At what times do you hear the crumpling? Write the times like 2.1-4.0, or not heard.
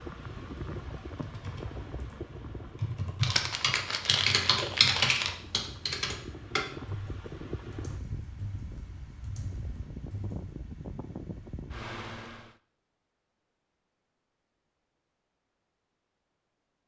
3.2-5.4.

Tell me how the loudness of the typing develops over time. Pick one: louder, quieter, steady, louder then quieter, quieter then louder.
louder then quieter.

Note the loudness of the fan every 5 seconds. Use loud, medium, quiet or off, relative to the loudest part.
loud, loud, loud, off.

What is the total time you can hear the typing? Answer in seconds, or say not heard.
10 s.